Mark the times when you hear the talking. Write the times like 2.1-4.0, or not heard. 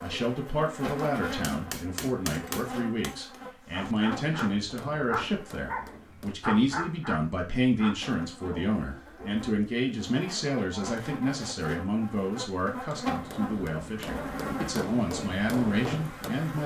0.0-16.6.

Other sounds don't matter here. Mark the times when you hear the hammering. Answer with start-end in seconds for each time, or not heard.
1.2-6.3, 13.1-16.5.